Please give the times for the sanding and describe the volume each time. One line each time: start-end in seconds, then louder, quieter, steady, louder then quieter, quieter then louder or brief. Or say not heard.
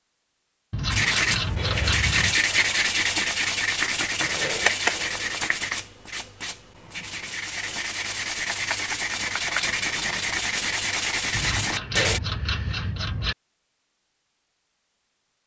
0.9-12.2 quieter then louder.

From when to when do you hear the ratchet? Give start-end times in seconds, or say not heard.
0.7-2.4, 11.3-13.3.